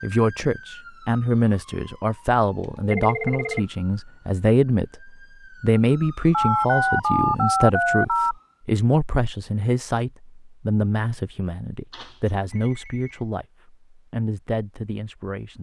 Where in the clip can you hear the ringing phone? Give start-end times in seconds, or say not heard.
2.6-3.6, 6.3-8.3, 11.9-13.2.